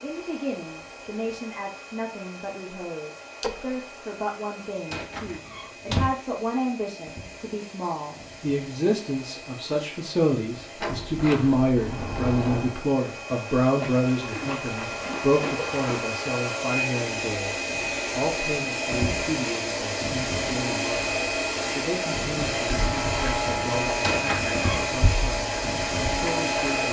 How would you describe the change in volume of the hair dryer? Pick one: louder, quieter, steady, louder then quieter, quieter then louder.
louder.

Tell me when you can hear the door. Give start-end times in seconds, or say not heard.
4.9-6.1, 10.8-12.8, 24.0-24.9.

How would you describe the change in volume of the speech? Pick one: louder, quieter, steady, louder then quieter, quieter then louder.
louder then quieter.